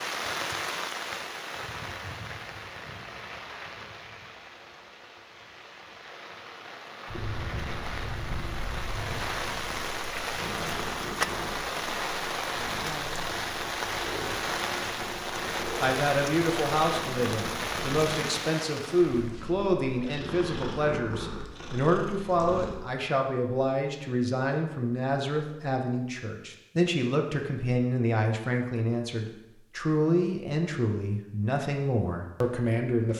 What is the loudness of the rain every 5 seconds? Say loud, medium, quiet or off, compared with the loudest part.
medium, medium, loud, loud, off, off, off.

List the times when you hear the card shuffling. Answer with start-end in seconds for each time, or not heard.
not heard.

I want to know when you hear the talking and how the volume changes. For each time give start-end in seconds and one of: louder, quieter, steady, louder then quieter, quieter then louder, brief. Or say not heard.
15.8-33.1 steady.